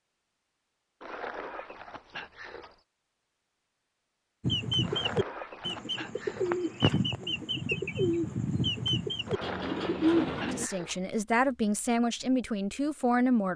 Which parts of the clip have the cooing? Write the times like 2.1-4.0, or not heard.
4.4-10.7.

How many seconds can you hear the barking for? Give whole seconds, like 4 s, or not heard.
6 s.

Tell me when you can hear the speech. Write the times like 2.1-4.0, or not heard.
10.5-13.5.